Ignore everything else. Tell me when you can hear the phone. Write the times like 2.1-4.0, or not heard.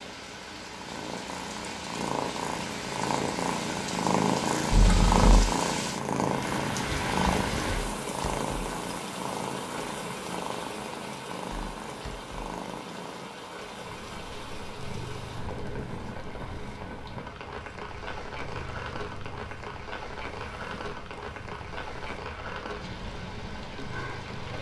4.7-5.5.